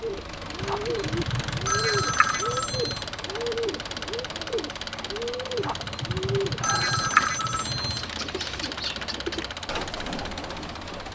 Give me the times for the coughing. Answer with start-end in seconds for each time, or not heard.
not heard.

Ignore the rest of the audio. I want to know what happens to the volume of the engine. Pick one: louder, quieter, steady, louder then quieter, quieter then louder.
steady.